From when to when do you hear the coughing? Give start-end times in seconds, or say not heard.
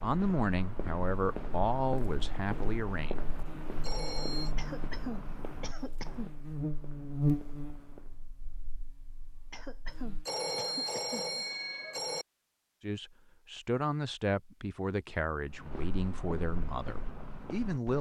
4.5-6.3, 9.5-11.2.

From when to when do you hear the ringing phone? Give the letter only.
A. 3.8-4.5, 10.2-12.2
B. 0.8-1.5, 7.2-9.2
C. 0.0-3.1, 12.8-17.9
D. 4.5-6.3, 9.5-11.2
A.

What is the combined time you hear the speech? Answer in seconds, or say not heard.
8 s.